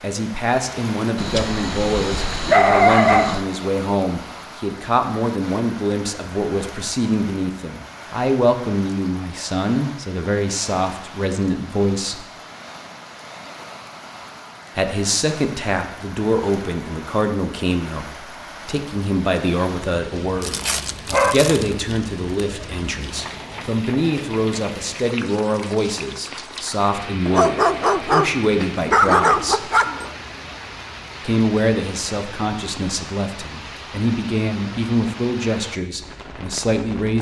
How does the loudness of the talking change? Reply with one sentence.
The loudness of the talking stays about the same.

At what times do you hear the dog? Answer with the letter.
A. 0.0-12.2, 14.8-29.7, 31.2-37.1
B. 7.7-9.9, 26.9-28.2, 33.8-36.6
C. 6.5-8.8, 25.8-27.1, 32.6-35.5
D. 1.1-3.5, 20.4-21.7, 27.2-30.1
D.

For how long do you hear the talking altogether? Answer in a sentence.
The talking can be heard for 33 seconds in total.